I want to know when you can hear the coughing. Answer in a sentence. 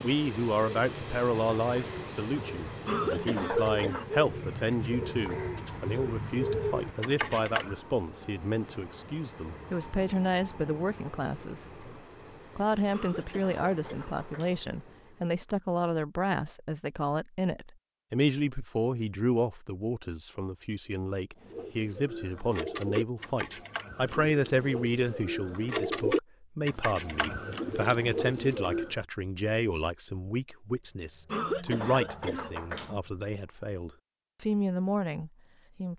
You can hear the coughing from 2.9 to 4.1 s, from 12.9 to 14.6 s and from 31.2 to 33.0 s.